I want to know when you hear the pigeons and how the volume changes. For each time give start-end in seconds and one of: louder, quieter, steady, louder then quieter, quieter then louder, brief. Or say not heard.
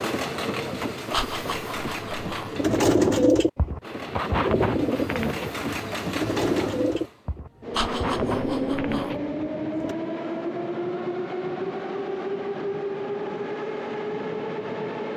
2.3-9.9 quieter.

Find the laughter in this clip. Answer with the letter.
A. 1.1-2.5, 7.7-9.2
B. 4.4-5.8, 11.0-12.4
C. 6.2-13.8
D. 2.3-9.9
A.